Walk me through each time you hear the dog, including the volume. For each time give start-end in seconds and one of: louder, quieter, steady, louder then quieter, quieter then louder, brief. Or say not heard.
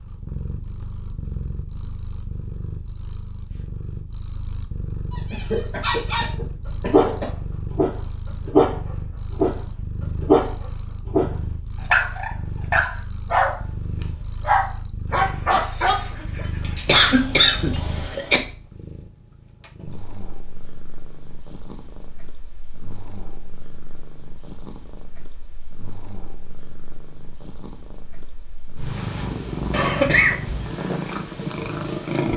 5.1-17.0 steady.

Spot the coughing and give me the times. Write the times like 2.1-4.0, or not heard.
5.3-7.2, 16.9-18.4, 29.7-30.4.